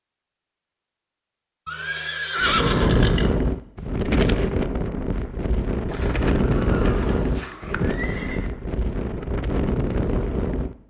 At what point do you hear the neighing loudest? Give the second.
3 s.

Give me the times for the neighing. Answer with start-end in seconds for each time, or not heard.
1.6-3.4, 5.9-8.5.